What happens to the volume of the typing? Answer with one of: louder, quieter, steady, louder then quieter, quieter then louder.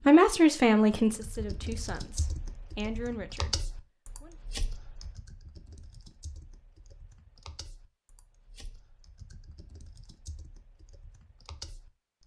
quieter then louder.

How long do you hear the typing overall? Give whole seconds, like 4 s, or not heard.
11 s.